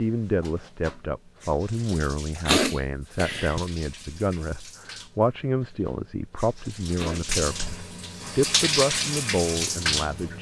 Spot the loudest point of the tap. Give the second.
9 s.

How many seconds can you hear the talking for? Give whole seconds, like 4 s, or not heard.
10 s.